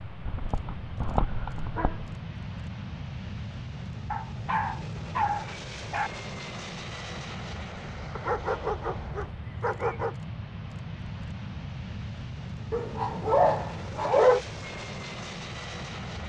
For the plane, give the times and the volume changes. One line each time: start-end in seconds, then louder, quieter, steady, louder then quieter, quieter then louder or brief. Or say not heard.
0.0-16.2 steady.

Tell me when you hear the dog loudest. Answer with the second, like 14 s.
14 s.